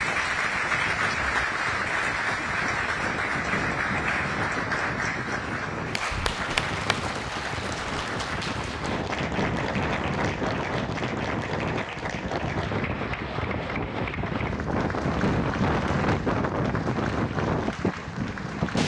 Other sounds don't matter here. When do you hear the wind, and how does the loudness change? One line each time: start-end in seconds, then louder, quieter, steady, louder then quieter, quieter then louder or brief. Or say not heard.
0.0-18.8 louder.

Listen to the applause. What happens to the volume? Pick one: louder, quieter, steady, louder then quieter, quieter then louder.
quieter.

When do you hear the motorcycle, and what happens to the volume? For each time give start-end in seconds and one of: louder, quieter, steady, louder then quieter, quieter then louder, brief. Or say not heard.
not heard.